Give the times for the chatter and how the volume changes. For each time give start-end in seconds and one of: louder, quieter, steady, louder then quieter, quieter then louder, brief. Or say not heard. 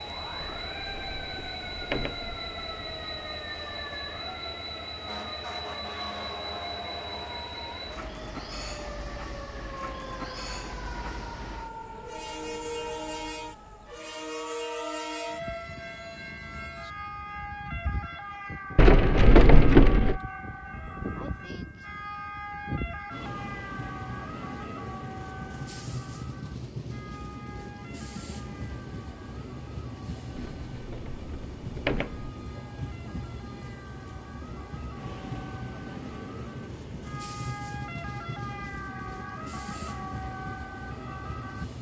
not heard.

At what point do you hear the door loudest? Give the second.
20 s.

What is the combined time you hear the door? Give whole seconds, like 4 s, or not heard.
5 s.